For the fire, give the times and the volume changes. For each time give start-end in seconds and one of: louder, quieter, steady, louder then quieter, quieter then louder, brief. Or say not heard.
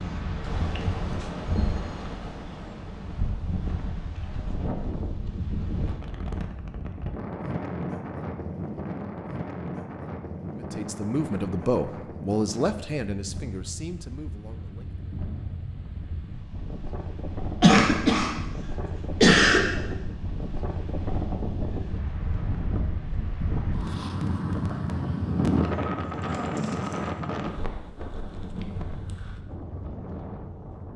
not heard.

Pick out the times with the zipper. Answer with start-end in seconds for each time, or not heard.
not heard.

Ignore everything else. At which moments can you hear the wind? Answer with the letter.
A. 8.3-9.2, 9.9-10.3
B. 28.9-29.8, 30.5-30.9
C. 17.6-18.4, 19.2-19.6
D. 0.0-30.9
D.